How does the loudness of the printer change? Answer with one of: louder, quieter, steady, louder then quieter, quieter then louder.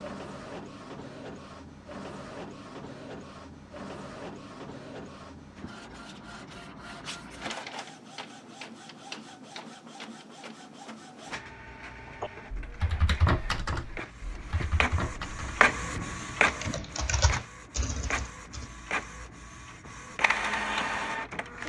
louder.